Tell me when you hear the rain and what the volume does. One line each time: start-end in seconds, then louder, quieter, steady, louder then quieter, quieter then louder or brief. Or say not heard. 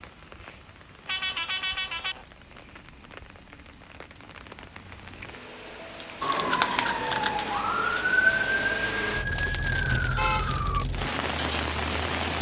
0.0-12.3 louder.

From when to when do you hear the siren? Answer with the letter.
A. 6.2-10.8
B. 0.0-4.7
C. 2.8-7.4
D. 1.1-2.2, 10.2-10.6
A.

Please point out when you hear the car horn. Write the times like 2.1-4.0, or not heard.
1.1-2.2, 10.2-10.6.